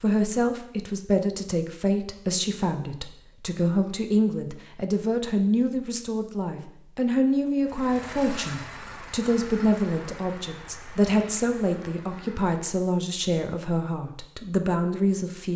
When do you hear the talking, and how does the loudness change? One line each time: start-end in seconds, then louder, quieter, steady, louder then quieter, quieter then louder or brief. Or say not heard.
0.0-15.5 steady.